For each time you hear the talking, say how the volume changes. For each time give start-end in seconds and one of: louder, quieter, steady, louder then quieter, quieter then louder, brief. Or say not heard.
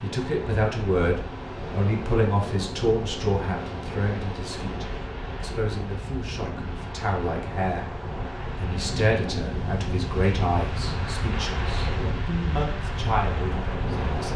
0.0-7.9 quieter
8.6-14.3 quieter then louder.